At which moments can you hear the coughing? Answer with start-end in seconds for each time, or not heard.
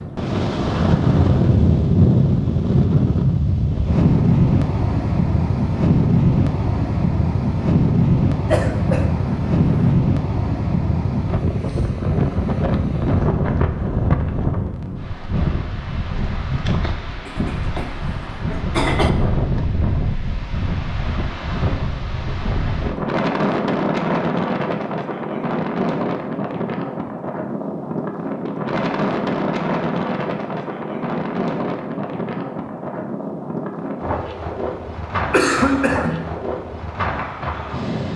8.4-10.0, 17.2-19.1, 35.3-36.3.